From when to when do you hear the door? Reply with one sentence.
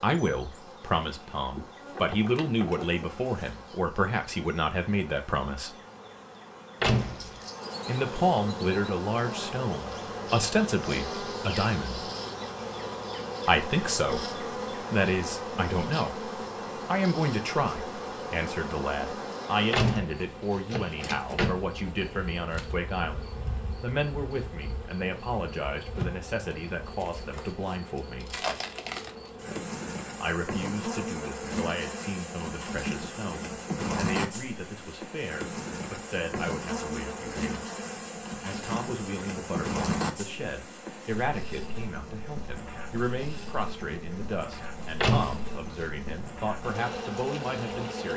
You can hear the door from 6.8 to 7.4 s, from 19.7 to 21.6 s and from 45.0 to 45.9 s.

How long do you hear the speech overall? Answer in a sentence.
You can hear the speech for 42 seconds altogether.